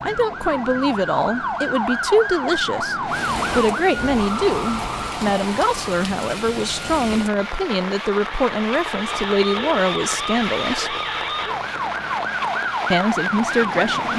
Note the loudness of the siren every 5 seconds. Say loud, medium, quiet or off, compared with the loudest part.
loud, medium, loud.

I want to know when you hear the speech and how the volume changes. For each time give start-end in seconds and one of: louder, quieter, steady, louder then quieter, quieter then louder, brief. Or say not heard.
0.0-10.9 steady
12.9-14.1 brief.